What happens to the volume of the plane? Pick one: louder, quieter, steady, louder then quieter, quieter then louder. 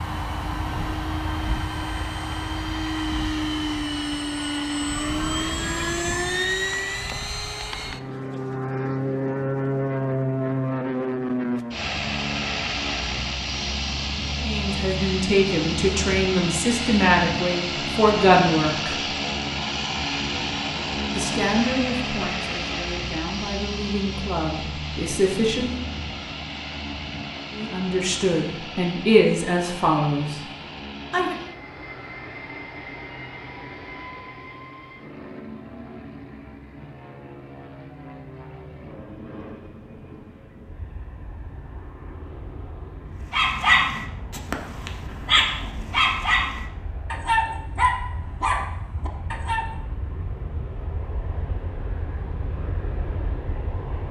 quieter.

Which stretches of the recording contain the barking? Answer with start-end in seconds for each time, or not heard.
43.3-49.6.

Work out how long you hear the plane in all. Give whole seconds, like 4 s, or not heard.
54 s.